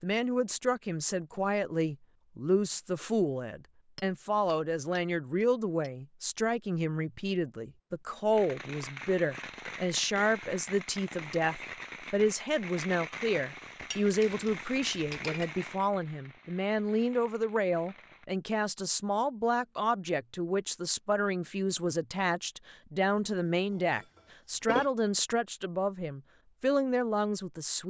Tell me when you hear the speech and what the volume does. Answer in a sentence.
The speech can be heard from 0.0 to 27.8 s, at a steady volume.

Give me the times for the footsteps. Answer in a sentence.
The footsteps can't be heard in this clip.